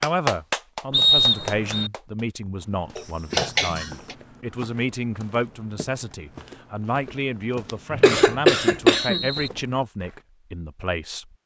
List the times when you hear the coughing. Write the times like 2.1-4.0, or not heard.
3.0-4.2, 8.0-9.3.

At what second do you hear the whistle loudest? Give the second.
1 s.